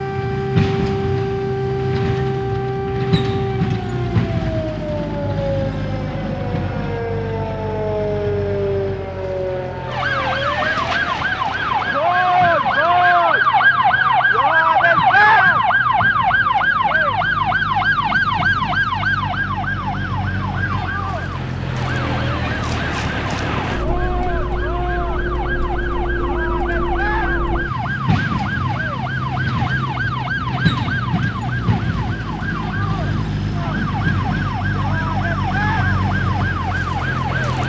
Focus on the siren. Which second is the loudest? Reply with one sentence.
The volume of the siren peaks at 15 seconds.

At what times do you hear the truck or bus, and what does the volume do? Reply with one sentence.
The truck or bus can be heard from 0.0 to 37.6 s, getting quieter then louder.